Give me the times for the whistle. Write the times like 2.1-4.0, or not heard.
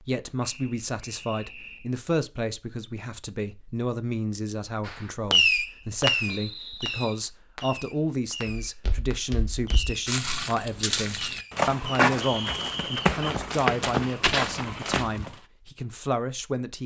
0.4-1.9, 6.2-7.2, 12.2-13.1.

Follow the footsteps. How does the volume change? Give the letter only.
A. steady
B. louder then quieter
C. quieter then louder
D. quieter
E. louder
E.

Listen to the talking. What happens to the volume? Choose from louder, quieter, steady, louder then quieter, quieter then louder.
steady.